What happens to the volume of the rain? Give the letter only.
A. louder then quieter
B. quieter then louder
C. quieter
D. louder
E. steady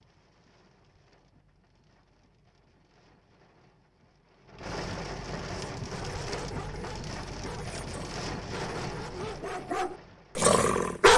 D.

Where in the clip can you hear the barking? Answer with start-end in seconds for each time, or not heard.
5.8-11.1.